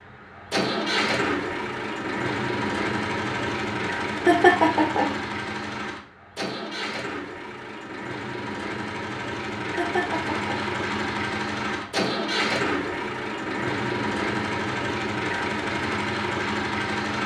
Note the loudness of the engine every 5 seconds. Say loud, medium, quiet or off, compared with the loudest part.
loud, medium, loud, loud.